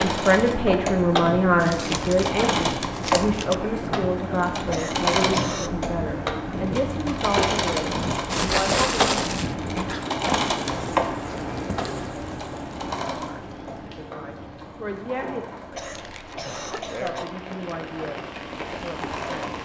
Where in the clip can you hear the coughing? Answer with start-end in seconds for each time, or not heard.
4.7-5.7, 15.7-17.2.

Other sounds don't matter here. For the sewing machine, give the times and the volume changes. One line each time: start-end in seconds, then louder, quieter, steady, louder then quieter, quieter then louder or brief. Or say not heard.
0.0-19.6 quieter.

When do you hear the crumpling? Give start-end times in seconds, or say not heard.
1.6-3.5, 8.2-9.6, 15.9-17.8.